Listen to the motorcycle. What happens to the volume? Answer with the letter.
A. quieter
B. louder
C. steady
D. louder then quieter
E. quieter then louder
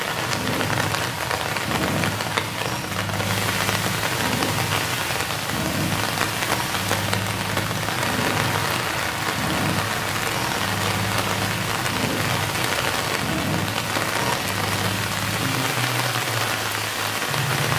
C.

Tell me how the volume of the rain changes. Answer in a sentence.
The volume of the rain stays about the same.